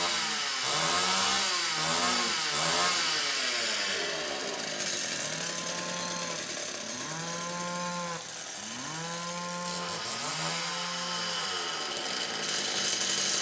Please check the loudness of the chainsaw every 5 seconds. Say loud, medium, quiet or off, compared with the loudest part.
loud, medium, loud.